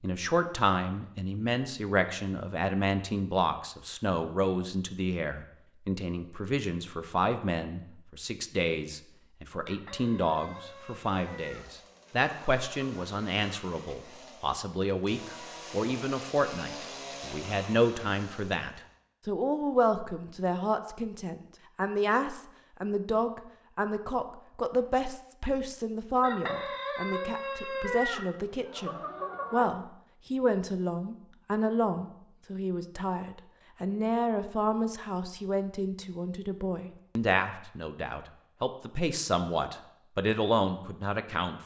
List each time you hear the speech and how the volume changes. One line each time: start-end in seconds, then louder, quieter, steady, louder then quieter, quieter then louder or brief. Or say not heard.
0.0-41.6 steady.